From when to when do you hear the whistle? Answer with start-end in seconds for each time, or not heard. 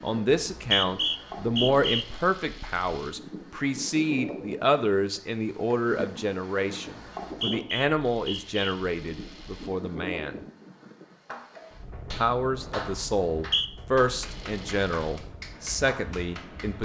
0.4-2.0, 7.2-8.6, 13.1-13.7.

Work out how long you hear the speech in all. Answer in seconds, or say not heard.
15 s.